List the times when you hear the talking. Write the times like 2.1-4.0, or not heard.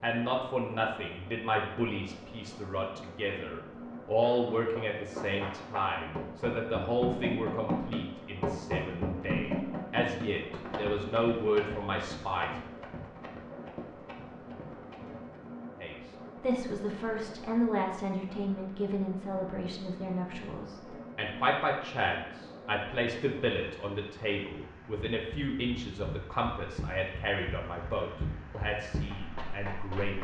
0.0-12.6, 15.8-30.1.